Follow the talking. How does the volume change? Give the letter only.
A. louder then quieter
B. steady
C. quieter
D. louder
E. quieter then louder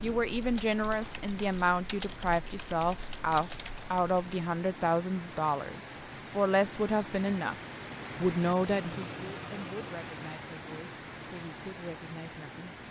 C.